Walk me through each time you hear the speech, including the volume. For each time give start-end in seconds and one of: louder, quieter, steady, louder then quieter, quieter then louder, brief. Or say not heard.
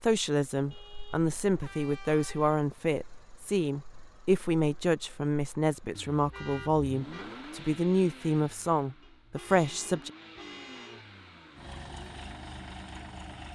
0.0-10.1 steady.